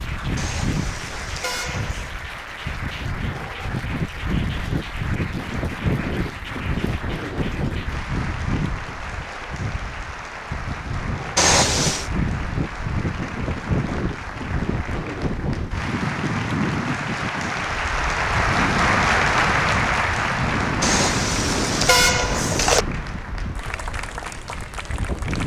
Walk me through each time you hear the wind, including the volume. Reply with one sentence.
The wind can be heard from 0.0 to 25.4 s, at a steady volume.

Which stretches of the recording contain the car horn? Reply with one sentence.
You can hear the car horn from 0.3 to 2.1 s, from 11.3 to 12.1 s and from 20.8 to 22.9 s.